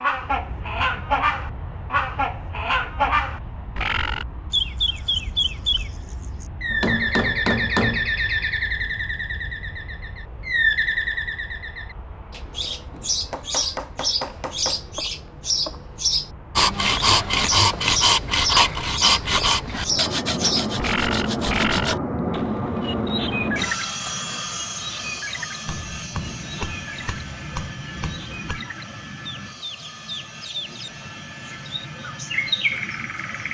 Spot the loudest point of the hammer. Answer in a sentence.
The volume of the hammer peaks at 8 seconds.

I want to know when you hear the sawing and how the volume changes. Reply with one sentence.
You can hear the sawing from 16.6 to 22.0 s, getting quieter.